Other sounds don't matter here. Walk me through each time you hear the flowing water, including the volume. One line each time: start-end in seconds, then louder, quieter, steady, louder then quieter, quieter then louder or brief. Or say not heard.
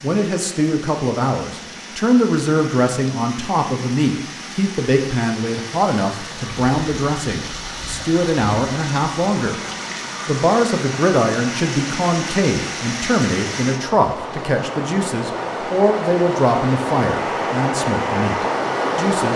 0.0-19.3 louder.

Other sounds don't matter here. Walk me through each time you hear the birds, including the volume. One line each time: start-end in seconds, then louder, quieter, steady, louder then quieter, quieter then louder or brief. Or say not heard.
not heard.